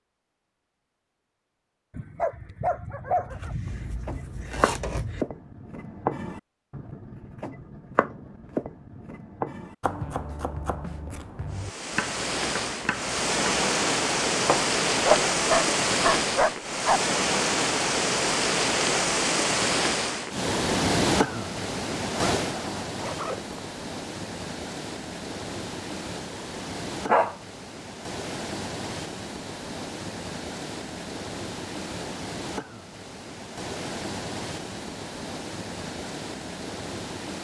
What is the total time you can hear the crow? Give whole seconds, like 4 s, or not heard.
not heard.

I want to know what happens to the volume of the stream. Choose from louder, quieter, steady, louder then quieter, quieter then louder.
quieter.